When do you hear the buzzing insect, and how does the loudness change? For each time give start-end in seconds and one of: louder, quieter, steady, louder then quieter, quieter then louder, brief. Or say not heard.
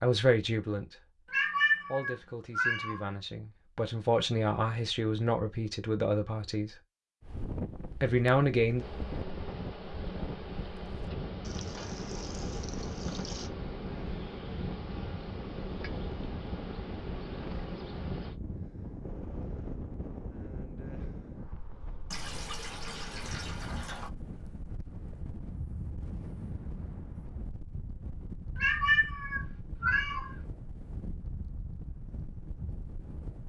8.8-18.4 steady.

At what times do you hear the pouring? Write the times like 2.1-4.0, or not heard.
11.4-13.5, 22.1-24.1.